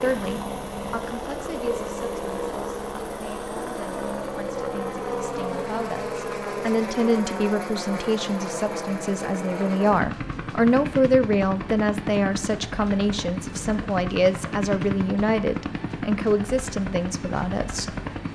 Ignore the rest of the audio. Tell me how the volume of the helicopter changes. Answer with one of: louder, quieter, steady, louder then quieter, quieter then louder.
steady.